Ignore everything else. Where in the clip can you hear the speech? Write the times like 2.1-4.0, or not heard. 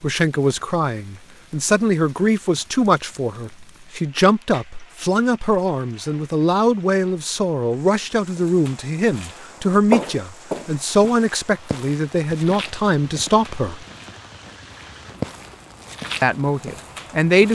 0.0-13.8, 16.2-17.5.